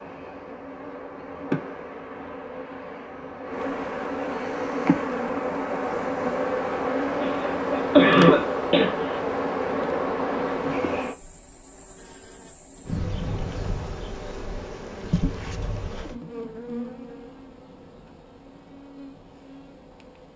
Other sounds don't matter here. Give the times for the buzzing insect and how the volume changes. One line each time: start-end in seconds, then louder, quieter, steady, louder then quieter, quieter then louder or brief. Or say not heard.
0.0-20.3 louder then quieter.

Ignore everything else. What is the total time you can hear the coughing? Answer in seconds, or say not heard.
2 s.